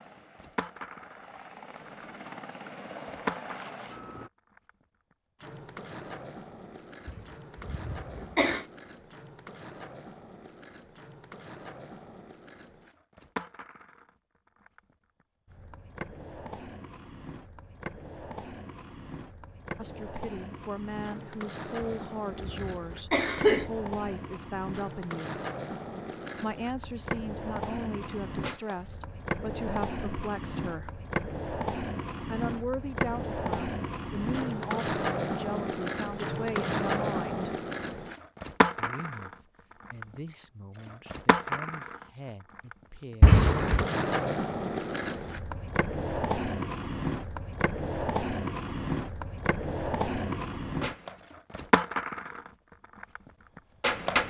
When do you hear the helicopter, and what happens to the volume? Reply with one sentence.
You can hear the helicopter from 0.0 to 4.3 s, getting louder.